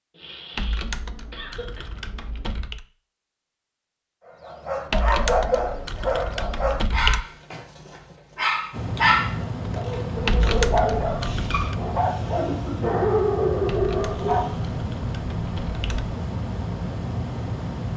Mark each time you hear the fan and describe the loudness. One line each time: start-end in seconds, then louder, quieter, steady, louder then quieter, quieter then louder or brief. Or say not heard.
8.7-17.9 steady.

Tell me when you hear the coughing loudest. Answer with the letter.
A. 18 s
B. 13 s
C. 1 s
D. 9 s
B.